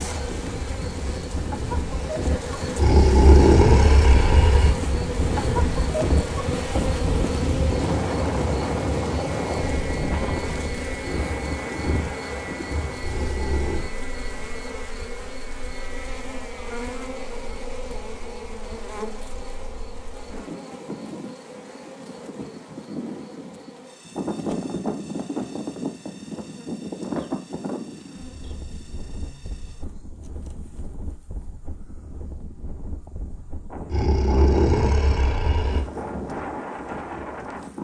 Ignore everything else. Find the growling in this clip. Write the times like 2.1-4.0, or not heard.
2.8-4.7, 13.0-13.9, 33.9-35.9.